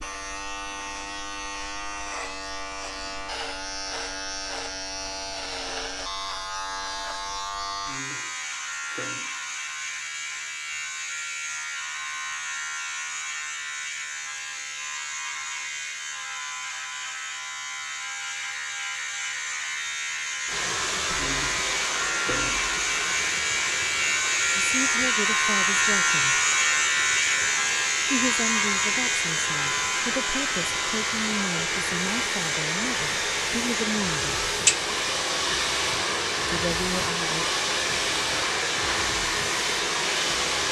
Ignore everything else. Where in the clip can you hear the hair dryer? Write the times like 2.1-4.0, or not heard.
20.4-40.6.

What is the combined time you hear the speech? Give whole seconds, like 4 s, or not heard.
9 s.